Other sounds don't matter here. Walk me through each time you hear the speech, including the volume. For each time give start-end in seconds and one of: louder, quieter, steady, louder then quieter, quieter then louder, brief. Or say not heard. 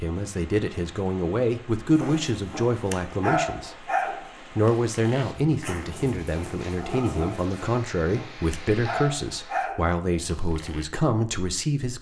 0.0-11.9 steady.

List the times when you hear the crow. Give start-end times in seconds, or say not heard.
not heard.